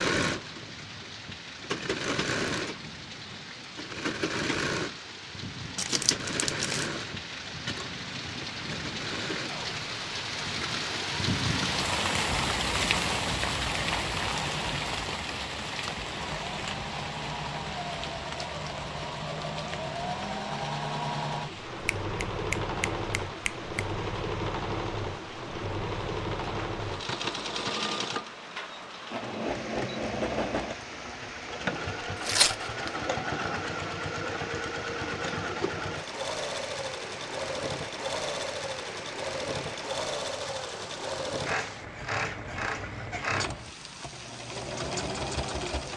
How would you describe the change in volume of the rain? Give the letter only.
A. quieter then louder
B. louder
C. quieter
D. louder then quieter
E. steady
D.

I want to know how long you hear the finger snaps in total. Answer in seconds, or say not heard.
2 s.